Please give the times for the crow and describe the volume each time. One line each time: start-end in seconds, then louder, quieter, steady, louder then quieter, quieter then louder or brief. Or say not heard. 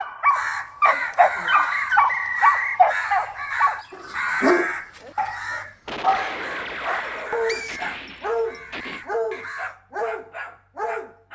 0.3-9.8 quieter.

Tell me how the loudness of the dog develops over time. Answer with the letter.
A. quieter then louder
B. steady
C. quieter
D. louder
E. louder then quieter
C.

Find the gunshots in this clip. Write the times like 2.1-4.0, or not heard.
5.8-9.1.